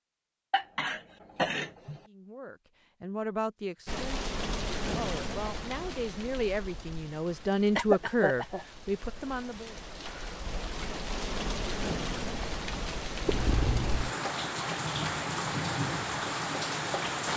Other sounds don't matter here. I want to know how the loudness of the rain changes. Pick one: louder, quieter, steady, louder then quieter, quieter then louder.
quieter then louder.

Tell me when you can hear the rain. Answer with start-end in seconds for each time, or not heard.
3.9-17.3.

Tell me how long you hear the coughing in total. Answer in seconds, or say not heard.
3 s.